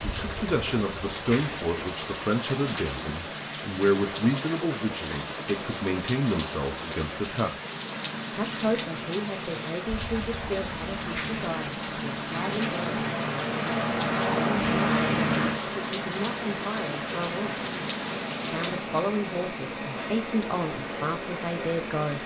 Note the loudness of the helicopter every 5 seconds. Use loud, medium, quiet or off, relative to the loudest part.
medium, medium, loud, loud, medium.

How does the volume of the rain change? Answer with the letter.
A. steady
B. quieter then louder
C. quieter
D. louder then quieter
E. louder
A.